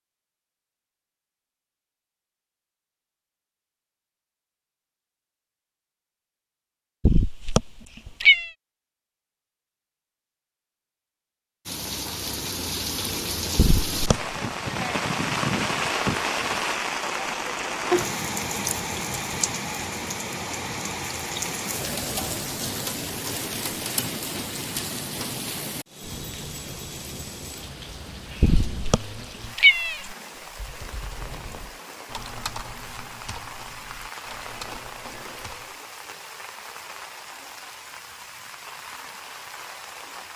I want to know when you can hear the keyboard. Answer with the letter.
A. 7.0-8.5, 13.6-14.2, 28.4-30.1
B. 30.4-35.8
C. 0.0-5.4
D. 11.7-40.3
B.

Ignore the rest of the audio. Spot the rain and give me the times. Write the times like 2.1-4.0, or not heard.
11.7-40.3.